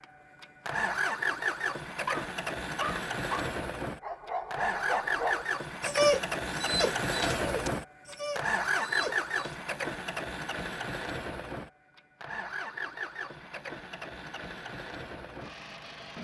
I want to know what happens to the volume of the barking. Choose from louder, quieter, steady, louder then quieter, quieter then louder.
louder then quieter.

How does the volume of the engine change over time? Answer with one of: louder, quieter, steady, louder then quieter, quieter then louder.
quieter.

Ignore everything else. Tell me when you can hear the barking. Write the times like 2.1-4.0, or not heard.
2.0-9.7.